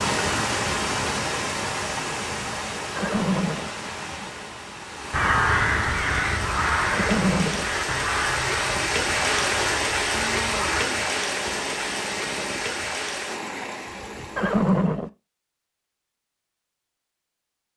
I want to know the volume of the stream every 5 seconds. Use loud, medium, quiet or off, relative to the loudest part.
loud, loud, loud, off.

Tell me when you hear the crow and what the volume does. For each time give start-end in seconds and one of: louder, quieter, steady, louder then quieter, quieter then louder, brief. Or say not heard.
5.1-10.8 quieter.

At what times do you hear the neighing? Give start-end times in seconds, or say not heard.
3.0-3.7, 6.9-7.7, 14.3-15.1.